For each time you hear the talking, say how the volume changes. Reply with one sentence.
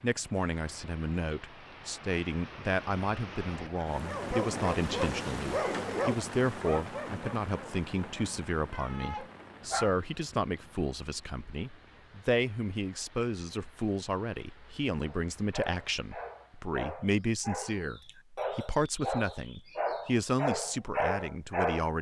The talking can be heard from 0.0 to 21.9 s, at a steady volume.